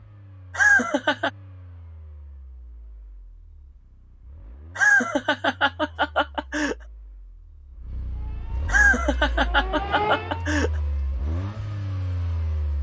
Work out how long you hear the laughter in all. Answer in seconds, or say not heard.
5 s.